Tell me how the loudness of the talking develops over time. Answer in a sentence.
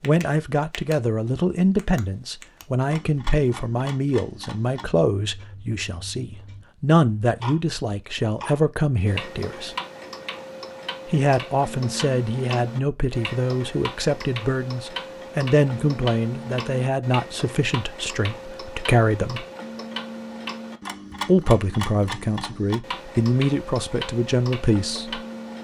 The loudness of the talking stays about the same.